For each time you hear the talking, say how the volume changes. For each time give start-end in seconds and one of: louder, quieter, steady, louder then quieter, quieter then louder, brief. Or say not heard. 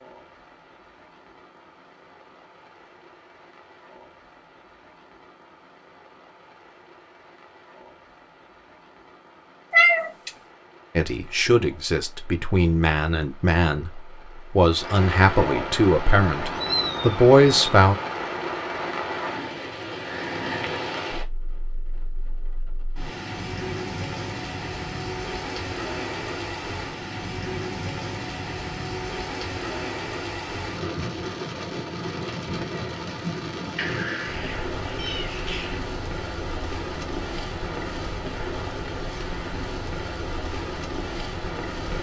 10.9-17.9 louder.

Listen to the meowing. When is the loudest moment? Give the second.
10 s.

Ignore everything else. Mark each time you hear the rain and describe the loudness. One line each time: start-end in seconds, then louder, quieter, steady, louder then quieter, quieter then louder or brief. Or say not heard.
0.0-41.9 louder.